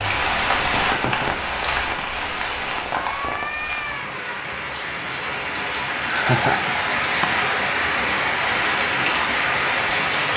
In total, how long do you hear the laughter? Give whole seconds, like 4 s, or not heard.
2 s.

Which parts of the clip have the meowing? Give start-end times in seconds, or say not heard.
3.0-4.4.